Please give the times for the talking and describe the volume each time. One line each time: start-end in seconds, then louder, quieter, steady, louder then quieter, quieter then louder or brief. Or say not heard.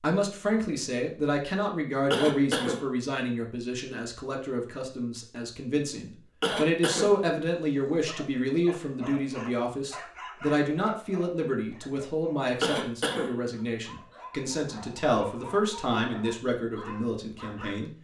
0.0-17.9 steady.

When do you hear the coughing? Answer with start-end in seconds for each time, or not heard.
2.1-2.8, 6.1-7.3, 12.6-13.6.